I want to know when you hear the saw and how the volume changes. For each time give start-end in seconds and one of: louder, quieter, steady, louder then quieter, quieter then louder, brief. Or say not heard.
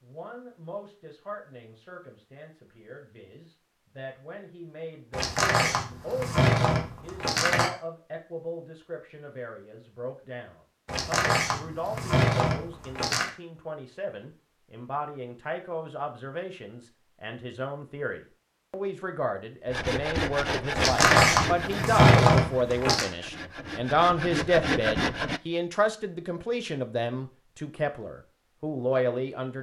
19.7-25.4 quieter then louder.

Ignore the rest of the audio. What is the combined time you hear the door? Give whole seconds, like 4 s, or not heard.
7 s.